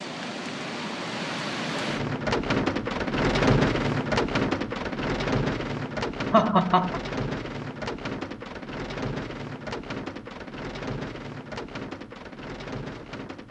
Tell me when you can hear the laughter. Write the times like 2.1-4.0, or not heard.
6.3-7.0.